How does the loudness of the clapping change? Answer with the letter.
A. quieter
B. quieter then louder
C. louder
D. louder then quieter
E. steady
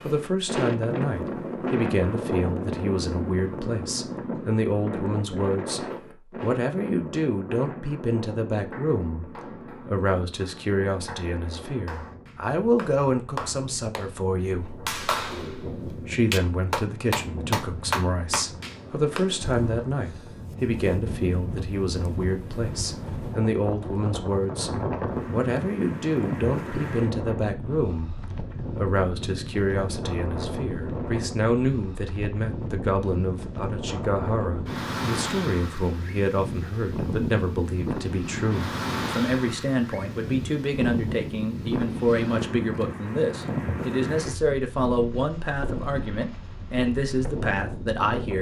C.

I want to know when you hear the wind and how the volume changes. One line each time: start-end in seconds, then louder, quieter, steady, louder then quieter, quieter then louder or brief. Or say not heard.
0.0-48.3 quieter then louder.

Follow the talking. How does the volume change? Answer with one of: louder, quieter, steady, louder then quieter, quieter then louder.
steady.